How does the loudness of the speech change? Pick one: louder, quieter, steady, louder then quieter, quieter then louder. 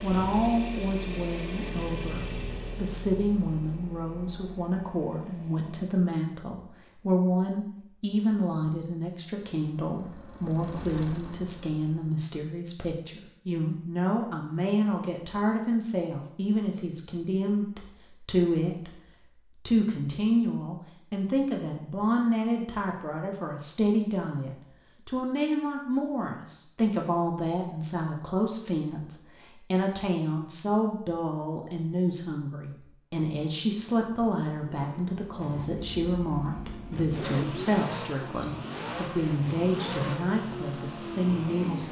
steady.